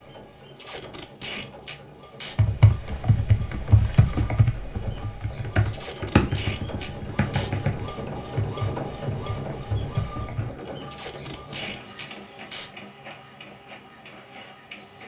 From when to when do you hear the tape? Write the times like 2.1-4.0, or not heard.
0.6-2.4, 5.7-7.5, 10.8-12.7.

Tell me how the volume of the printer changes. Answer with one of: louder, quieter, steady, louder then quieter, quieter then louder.
louder then quieter.